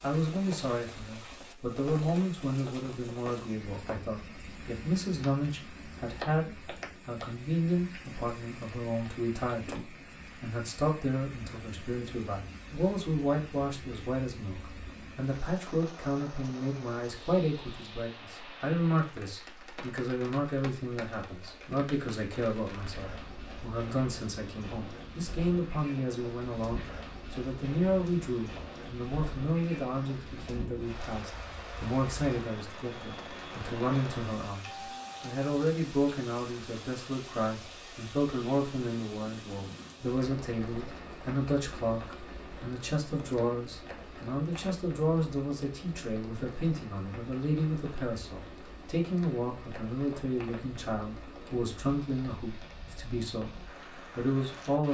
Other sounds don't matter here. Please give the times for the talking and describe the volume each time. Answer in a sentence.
You can hear the talking from 0.0 to 54.8 s, at a steady volume.